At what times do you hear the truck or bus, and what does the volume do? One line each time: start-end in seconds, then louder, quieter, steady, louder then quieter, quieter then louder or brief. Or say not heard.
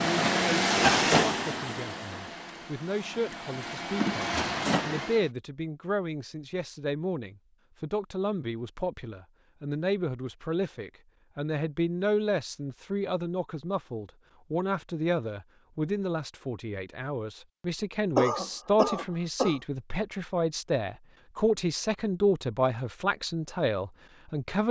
0.0-5.2 quieter then louder.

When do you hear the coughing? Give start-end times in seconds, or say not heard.
18.1-19.6.